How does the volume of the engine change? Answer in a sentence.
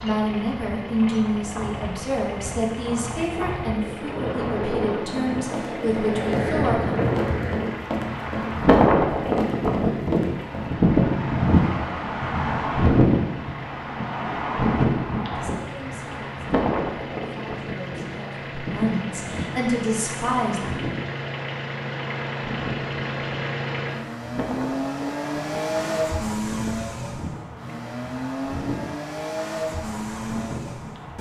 The loudness of the engine goes up.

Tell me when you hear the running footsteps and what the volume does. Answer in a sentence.
The running footsteps can be heard from 5.0 to 10.8 s, at a steady volume.